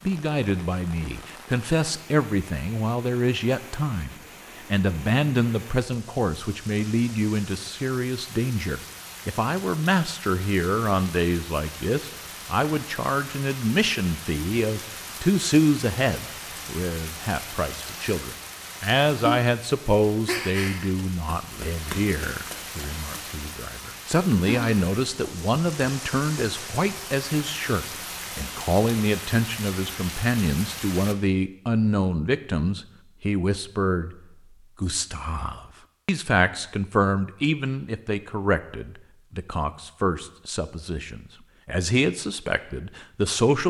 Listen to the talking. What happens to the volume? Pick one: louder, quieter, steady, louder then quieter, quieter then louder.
steady.